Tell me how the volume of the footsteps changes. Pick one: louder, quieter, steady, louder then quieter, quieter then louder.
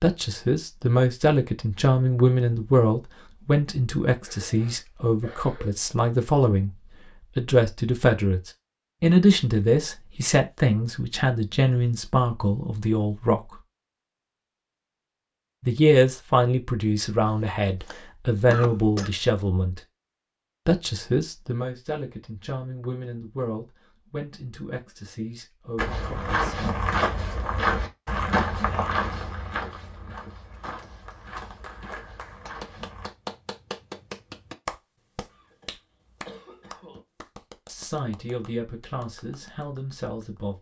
quieter.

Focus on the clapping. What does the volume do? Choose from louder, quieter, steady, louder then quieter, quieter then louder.
louder then quieter.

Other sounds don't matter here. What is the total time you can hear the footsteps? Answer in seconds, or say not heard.
7 s.